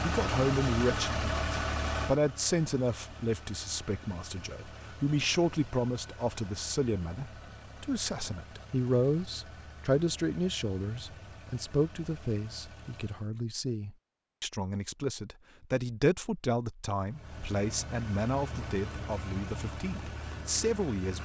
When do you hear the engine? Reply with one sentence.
You can hear the engine from 0.0 to 13.3 s and from 17.1 to 21.2 s.